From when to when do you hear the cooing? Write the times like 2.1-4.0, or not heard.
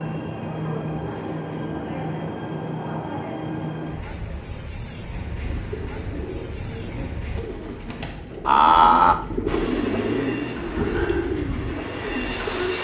5.3-12.7.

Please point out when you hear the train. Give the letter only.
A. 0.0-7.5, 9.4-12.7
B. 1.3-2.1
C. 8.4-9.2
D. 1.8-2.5
A.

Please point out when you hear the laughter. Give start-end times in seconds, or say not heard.
8.4-9.2.